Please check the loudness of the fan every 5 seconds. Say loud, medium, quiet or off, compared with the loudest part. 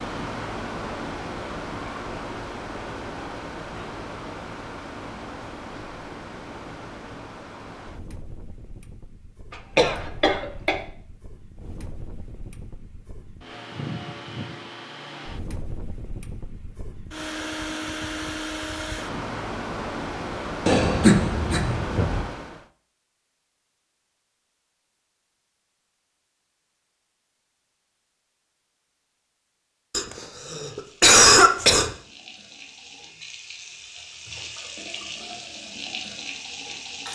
loud, medium, medium, loud, loud, off, off, off.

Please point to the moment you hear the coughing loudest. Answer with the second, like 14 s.
31 s.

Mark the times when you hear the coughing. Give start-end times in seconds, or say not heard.
9.5-10.8, 20.6-22.2, 29.9-31.9.